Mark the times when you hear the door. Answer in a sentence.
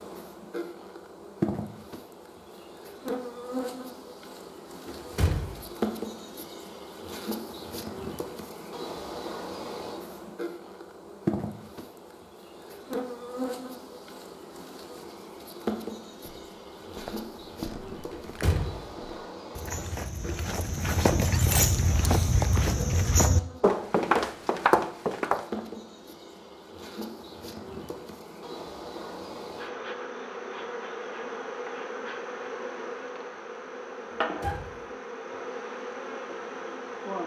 The door can be heard from 4.8 to 5.5 s, from 18.1 to 18.9 s and from 34.1 to 34.8 s.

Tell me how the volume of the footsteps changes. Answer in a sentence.
The loudness of the footsteps goes up.